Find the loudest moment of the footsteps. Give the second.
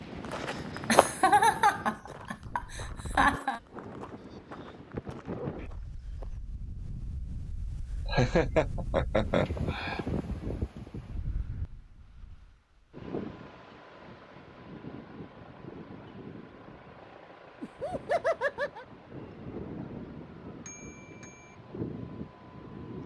1 s.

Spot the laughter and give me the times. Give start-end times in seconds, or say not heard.
0.8-3.6, 8.1-10.1, 17.6-18.9.